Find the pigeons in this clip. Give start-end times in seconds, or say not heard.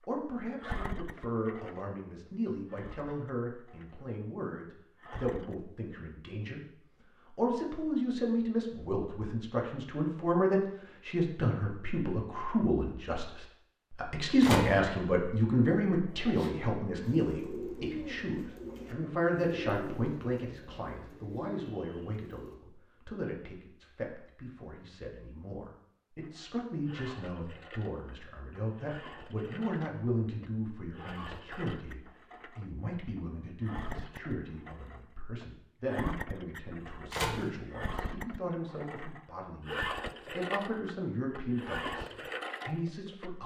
16.1-22.6.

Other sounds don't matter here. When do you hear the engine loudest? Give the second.
40 s.